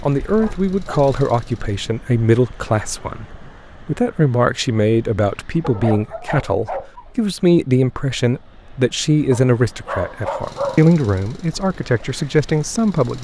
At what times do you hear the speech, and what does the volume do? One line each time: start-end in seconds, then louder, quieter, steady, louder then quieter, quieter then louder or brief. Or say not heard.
0.0-13.1 steady.